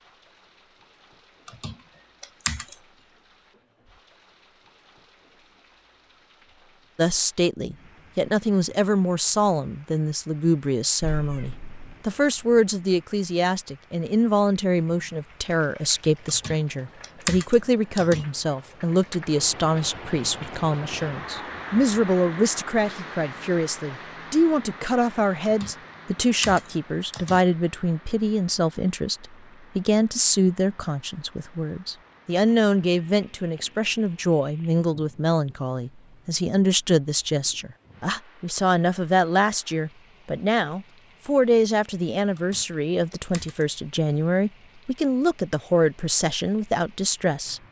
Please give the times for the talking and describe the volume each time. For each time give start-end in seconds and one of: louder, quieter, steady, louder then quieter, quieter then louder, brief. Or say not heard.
7.0-47.6 steady.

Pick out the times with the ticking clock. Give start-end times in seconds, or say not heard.
not heard.